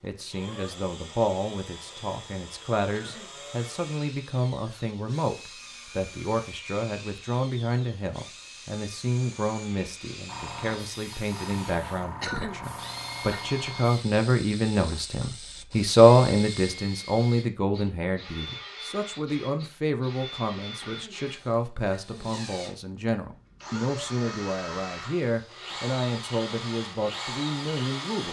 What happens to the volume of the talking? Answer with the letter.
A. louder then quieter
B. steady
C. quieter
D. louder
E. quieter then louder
A.